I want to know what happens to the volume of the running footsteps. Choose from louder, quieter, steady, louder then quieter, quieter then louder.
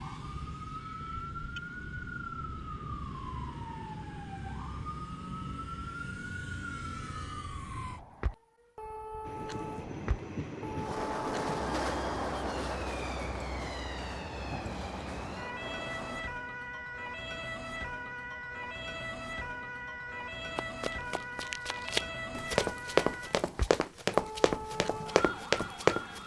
louder.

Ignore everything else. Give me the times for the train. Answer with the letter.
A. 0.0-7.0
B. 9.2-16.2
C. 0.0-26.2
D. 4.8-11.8
B.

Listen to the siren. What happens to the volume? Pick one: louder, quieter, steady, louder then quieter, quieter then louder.
steady.